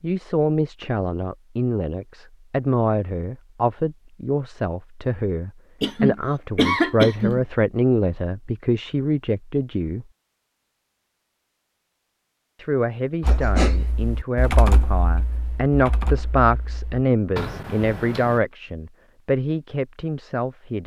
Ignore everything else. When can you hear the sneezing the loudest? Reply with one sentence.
The loudest moment of the sneezing is at 7 seconds.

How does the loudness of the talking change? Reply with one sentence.
The volume of the talking stays about the same.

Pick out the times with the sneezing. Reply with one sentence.
The sneezing can be heard from 5.8 to 7.5 s and from 13.2 to 13.8 s.